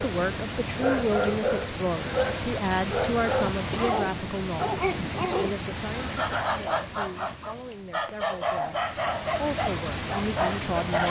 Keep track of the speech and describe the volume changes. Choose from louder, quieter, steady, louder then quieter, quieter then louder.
quieter then louder.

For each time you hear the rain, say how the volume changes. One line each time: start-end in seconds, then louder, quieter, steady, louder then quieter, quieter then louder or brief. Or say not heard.
0.0-11.0 quieter then louder.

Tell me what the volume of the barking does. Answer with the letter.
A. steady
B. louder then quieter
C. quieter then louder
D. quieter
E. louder
A.